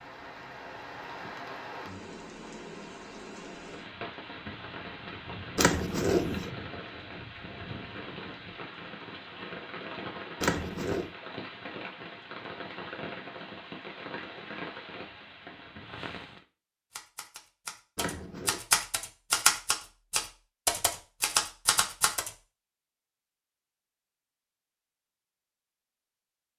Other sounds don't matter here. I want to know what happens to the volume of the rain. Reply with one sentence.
The loudness of the rain stays about the same.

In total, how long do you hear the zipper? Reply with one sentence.
The zipper can be heard for 2 seconds in total.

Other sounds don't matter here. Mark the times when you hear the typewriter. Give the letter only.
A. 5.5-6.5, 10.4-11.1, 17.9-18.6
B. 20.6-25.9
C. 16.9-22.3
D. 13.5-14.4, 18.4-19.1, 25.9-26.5
C.